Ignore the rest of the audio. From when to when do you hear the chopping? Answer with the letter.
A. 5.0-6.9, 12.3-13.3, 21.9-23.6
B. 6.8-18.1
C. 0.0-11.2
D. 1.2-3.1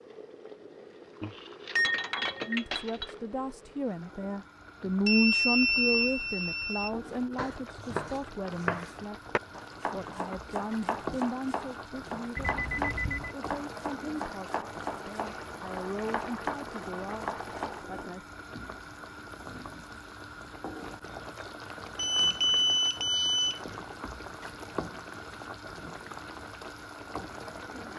B.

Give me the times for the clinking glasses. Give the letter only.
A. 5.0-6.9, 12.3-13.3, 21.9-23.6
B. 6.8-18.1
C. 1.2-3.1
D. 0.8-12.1
C.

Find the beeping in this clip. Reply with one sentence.
The beeping can be heard from 5.0 to 6.9 s, from 12.3 to 13.3 s and from 21.9 to 23.6 s.